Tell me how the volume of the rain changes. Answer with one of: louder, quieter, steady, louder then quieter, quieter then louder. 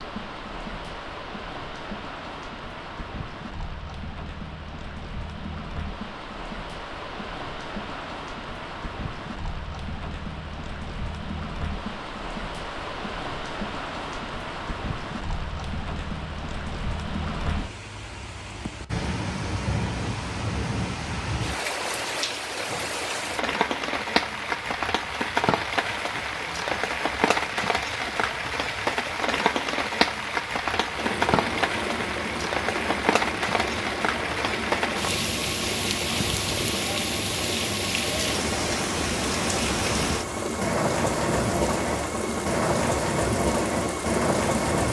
louder.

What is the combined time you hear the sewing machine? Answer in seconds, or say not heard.
14 s.